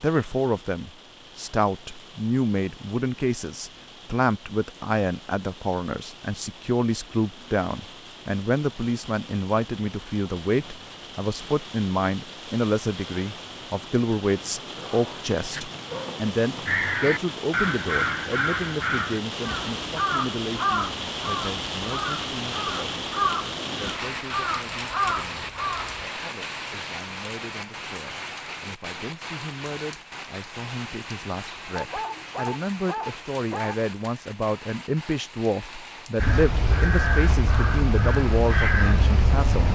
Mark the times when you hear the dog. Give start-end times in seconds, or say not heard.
14.8-16.8, 31.8-33.8.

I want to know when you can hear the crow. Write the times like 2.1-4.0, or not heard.
16.6-26.1, 36.1-39.7.